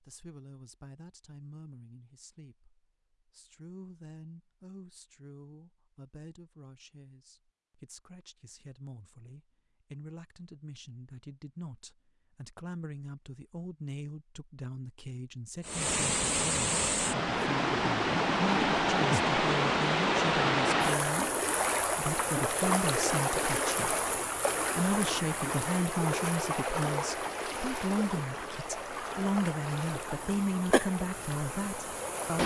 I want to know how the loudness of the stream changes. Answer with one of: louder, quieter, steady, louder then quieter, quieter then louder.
quieter.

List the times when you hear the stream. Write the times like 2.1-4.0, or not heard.
15.6-32.4.